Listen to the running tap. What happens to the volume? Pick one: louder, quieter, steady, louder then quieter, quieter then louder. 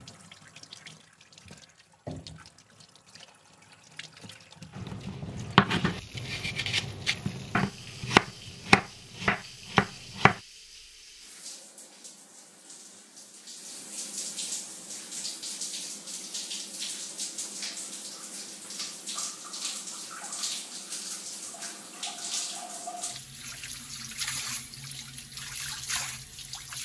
louder.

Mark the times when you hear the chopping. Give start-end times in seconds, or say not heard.
4.8-10.3.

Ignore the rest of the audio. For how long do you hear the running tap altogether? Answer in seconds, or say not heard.
27 s.